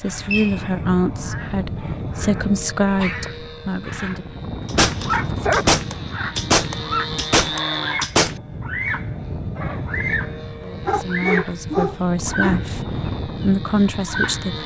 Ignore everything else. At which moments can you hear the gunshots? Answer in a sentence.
The gunshots can be heard from 4.7 to 8.4 s.